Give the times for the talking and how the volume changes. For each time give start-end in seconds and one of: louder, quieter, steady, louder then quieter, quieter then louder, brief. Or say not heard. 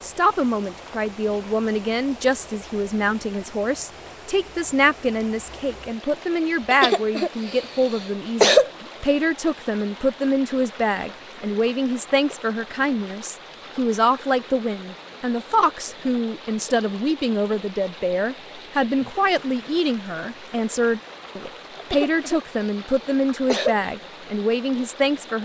0.0-25.4 steady.